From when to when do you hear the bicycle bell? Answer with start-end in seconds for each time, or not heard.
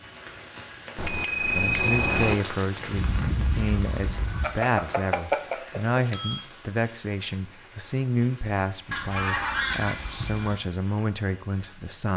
0.9-2.4, 4.4-6.5, 9.2-10.5.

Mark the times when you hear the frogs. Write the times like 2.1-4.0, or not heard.
not heard.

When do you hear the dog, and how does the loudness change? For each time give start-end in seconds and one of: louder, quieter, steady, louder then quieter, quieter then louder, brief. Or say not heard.
not heard.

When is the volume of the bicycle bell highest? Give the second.
2 s.